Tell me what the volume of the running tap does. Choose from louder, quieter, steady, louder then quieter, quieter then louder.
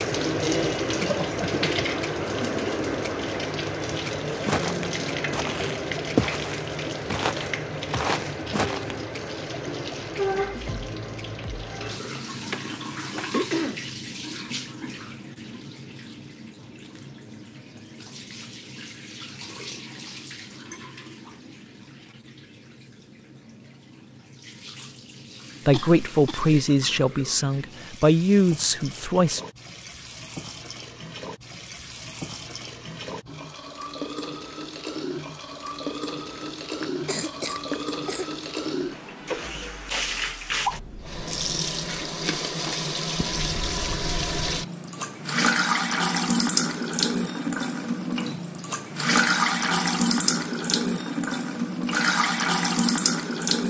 quieter then louder.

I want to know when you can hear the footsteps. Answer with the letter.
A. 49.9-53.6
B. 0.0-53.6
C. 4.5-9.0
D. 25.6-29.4
C.